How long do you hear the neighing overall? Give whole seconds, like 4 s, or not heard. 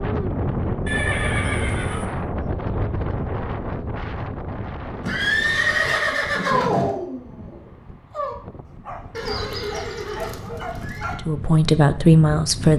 5 s.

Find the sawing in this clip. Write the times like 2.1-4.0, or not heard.
not heard.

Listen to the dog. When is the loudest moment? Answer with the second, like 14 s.
7 s.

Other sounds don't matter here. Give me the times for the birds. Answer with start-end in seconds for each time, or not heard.
not heard.